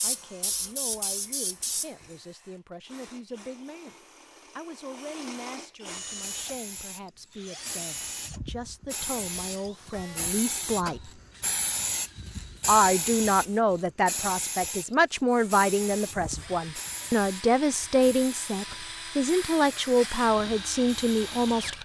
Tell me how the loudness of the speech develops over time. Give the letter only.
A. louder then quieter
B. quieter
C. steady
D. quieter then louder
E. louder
E.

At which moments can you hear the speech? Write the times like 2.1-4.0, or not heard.
0.0-4.0, 4.5-11.1, 12.7-21.8.